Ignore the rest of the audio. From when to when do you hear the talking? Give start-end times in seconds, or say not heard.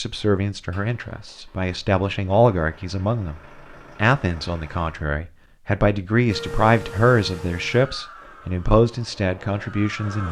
0.0-3.4, 4.0-10.2.